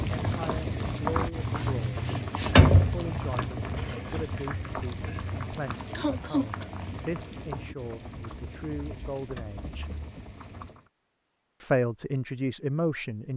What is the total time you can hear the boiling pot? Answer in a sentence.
You can hear the boiling pot for 11 seconds altogether.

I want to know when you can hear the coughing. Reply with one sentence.
The coughing can be heard from 5.5 to 6.7 s.